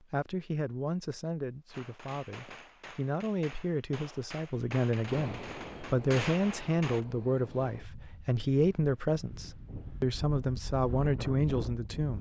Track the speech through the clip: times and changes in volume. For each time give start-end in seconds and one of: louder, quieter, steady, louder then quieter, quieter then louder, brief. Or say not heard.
0.1-12.1 louder.